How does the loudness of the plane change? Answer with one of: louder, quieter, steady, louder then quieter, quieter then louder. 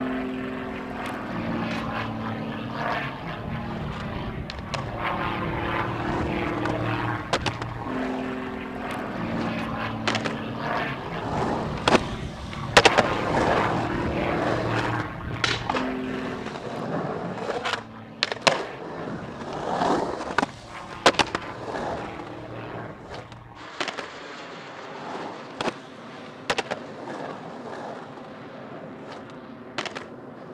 quieter.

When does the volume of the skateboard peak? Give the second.
13 s.